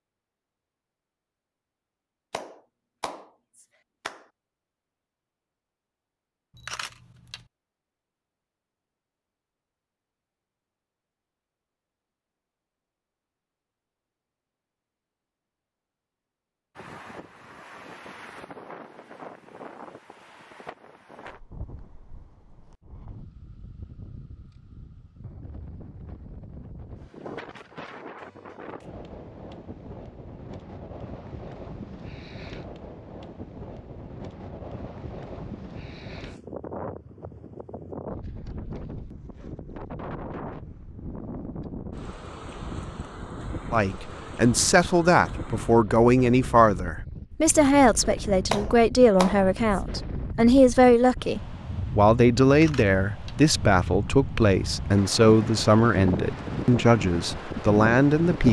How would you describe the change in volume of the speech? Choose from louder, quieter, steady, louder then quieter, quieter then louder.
steady.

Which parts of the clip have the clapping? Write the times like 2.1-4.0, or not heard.
2.3-4.2, 48.5-49.8.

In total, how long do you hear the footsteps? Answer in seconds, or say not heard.
not heard.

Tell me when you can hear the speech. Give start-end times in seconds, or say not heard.
43.7-58.4.